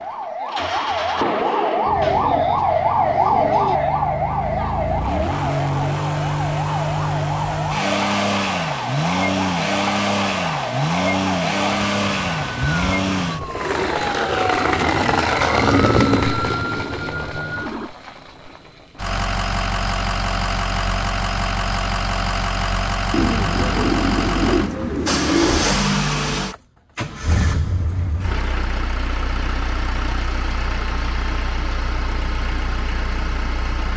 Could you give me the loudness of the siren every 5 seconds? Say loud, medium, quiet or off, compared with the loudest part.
loud, medium, medium, medium, off, off, off.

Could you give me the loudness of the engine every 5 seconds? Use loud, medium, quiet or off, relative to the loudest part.
medium, loud, loud, loud, loud, loud, medium.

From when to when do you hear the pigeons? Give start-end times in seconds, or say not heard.
1.8-3.8, 23.1-25.7.